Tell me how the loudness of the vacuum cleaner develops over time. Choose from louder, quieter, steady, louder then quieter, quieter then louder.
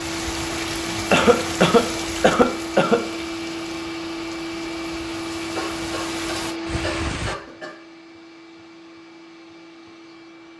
quieter.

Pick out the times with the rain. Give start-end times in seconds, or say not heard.
0.0-7.3.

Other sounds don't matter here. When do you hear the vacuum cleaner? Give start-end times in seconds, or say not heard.
0.0-10.5.